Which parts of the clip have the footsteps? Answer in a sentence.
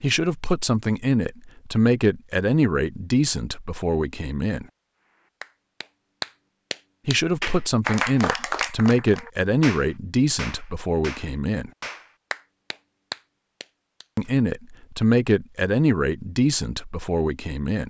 The footsteps can't be heard in this clip.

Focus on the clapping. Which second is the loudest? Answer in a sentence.
The loudest moment of the clapping is at 8 seconds.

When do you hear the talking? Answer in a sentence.
You can hear the talking from 0.0 to 4.7 s, from 7.0 to 11.7 s and from 14.2 to 17.8 s.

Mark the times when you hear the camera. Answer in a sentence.
The camera can't be heard in this clip.